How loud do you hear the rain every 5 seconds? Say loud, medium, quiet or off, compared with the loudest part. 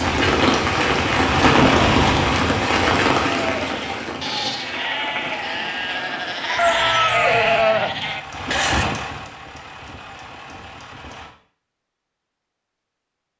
loud, quiet, off.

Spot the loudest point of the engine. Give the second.
2 s.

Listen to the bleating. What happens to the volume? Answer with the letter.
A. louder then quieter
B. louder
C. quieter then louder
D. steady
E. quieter
B.